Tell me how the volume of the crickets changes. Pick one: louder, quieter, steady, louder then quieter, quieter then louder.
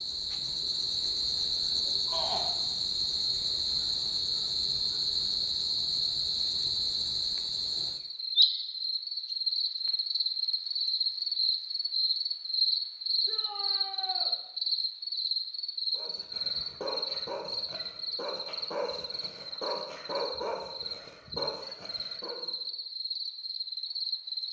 quieter.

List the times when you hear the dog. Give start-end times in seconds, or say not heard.
15.9-22.5.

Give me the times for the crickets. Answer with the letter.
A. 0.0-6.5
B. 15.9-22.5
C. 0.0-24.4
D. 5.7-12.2
C.